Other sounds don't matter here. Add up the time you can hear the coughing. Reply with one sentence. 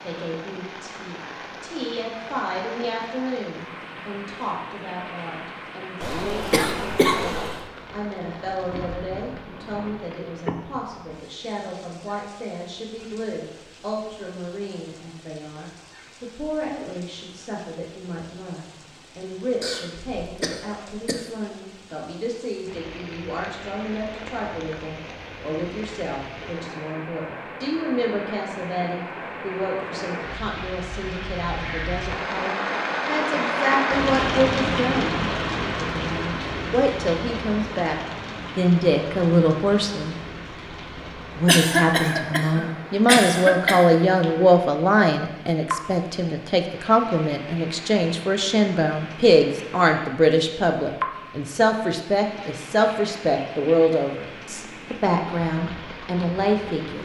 The coughing can be heard for 6 seconds in total.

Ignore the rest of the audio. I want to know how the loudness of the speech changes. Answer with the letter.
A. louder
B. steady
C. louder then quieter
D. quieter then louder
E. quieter
A.